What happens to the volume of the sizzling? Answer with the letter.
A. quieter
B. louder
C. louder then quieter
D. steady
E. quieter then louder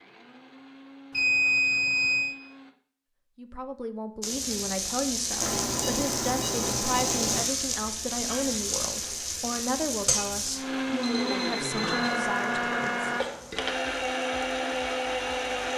A.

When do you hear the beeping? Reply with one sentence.
The beeping can be heard from 1.1 to 2.4 s, from 5.4 to 7.5 s and from 11.0 to 12.2 s.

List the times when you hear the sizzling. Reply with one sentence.
You can hear the sizzling from 4.2 to 15.7 s.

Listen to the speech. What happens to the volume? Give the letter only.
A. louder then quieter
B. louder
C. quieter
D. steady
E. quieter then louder
D.